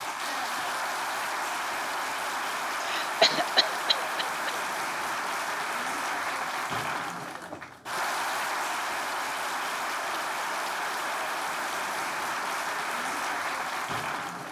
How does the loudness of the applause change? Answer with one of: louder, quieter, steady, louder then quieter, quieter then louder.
steady.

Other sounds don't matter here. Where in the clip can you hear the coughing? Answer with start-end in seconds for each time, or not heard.
2.8-4.5.